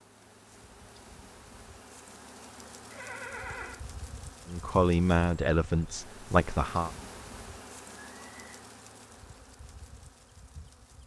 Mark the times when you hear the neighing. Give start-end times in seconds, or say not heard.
2.9-3.8, 8.1-8.7.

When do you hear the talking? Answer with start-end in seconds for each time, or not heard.
4.5-6.9.